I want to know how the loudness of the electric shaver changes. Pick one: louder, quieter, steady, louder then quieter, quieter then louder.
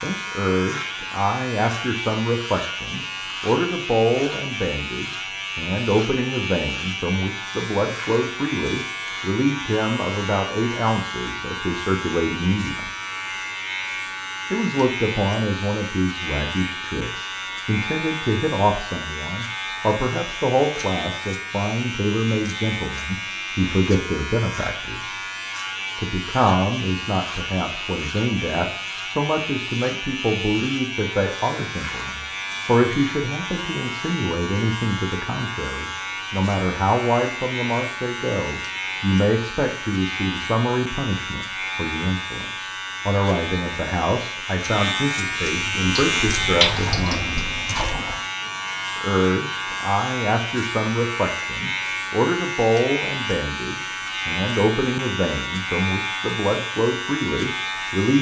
steady.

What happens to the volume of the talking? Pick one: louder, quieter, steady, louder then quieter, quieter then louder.
steady.